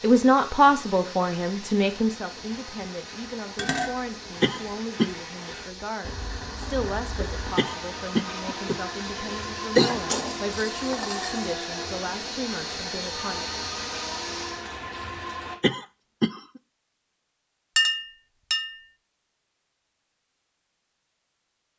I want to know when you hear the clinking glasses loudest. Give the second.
18 s.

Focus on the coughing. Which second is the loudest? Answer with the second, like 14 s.
10 s.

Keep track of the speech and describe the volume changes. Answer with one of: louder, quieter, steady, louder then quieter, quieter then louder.
quieter.